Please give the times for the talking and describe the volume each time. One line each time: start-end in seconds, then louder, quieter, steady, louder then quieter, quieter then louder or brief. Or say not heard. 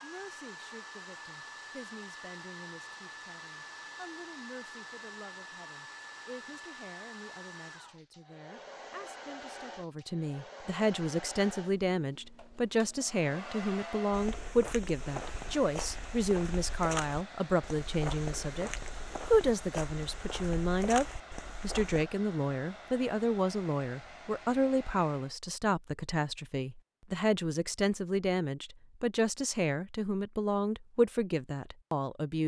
0.0-32.4 louder.